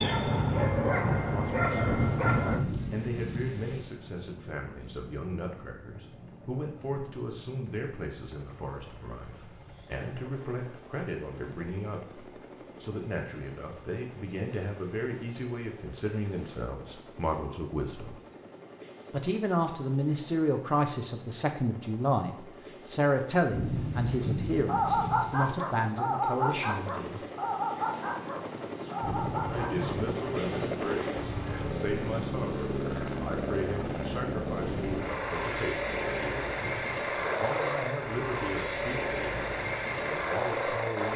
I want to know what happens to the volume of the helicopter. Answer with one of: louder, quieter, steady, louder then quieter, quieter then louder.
louder.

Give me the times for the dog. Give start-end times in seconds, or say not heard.
0.0-2.6, 24.6-29.9.